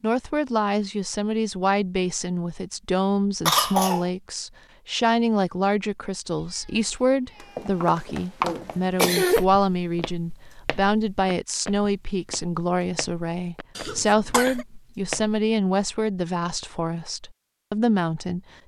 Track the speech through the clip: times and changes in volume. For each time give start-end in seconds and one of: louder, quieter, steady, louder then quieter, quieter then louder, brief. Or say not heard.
0.0-18.4 steady.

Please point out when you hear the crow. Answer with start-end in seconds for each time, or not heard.
not heard.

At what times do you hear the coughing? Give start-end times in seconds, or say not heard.
3.5-4.0, 8.4-9.4, 13.8-14.7.